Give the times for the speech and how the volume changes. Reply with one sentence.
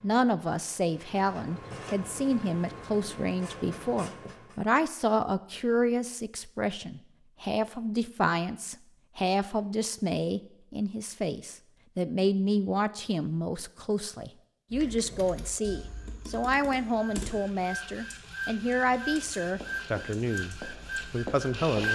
The speech can be heard from 0.0 to 21.8 s, at a steady volume.